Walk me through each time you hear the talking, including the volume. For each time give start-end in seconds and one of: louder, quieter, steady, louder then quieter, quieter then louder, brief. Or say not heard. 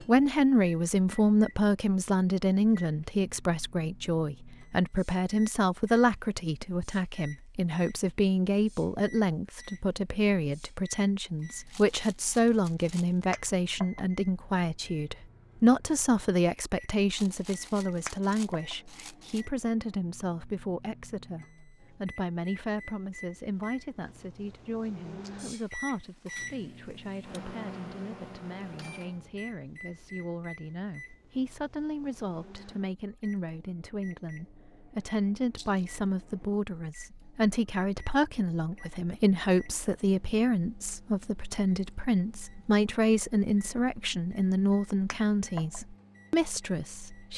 0.0-47.3 quieter then louder.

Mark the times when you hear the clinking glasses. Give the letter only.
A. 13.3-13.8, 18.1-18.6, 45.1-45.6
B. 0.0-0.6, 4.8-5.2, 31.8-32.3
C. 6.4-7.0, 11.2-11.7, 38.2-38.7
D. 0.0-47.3
A.